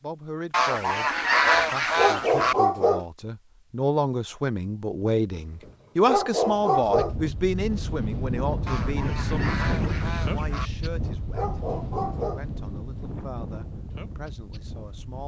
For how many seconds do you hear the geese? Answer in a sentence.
You can hear the geese for 4 seconds altogether.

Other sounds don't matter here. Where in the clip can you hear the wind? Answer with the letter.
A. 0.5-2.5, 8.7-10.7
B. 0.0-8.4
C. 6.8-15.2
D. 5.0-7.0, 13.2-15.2
C.